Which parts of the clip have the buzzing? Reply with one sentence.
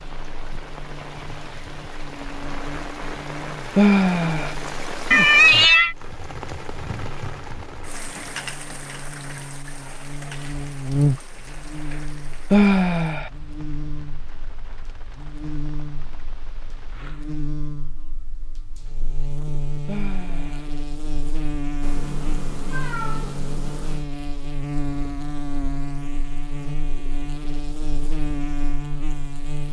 You can hear the buzzing from 0.0 to 29.6 s.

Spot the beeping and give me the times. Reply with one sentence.
The beeping can't be heard in this clip.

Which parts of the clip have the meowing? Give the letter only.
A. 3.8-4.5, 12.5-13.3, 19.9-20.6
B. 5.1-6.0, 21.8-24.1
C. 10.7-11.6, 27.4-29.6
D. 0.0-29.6
B.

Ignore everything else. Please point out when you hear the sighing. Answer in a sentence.
The sighing can be heard from 3.8 to 4.5 s, from 12.5 to 13.3 s and from 19.9 to 20.6 s.